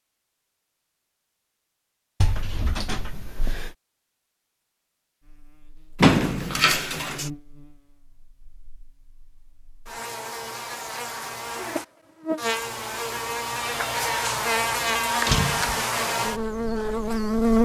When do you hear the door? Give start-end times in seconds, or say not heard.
2.2-3.8, 6.0-7.3, 15.2-15.8.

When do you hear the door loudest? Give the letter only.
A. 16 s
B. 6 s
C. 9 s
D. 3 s
B.